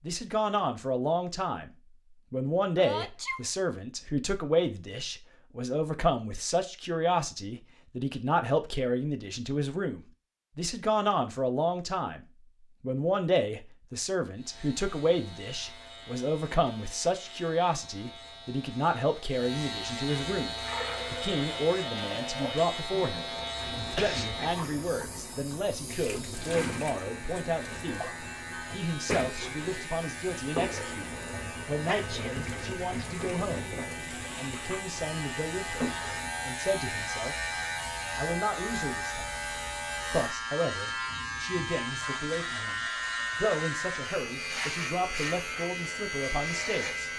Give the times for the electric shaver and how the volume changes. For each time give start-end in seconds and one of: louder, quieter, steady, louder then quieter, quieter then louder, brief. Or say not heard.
14.3-47.1 louder.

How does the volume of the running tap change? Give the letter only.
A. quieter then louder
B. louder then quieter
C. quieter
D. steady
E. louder
D.